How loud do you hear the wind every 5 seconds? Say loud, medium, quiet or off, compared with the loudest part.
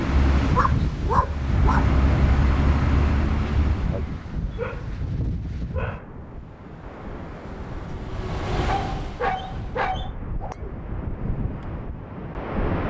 loud, medium, loud.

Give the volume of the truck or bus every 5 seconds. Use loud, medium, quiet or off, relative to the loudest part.
loud, medium, off.